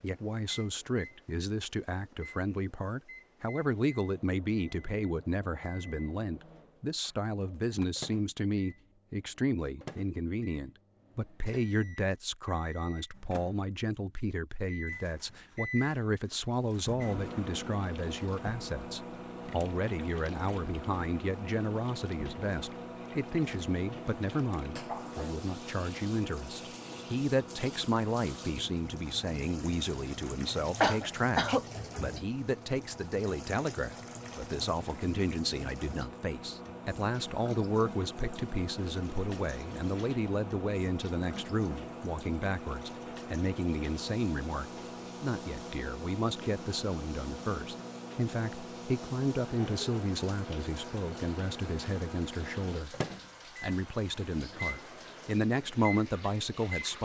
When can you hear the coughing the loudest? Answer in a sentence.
The loudest moment of the coughing is at 31 seconds.